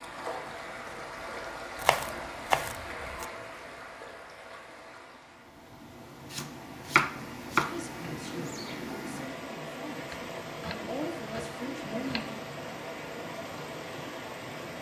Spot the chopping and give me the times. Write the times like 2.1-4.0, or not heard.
1.8-3.2, 6.3-7.8, 10.1-12.3.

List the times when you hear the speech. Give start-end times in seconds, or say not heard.
7.6-12.4.